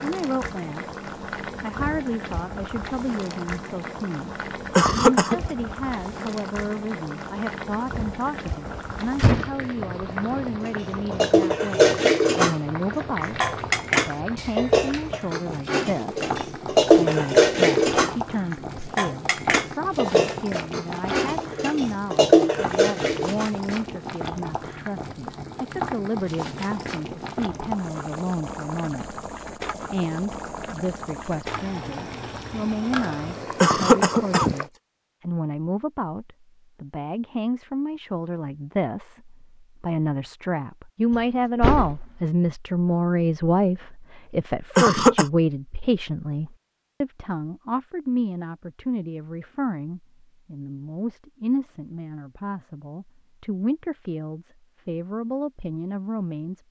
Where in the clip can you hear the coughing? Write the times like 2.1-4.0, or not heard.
4.8-5.4, 33.6-34.5, 44.8-45.2.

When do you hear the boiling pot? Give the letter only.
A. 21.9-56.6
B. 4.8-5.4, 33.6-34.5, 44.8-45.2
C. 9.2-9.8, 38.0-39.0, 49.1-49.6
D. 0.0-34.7
D.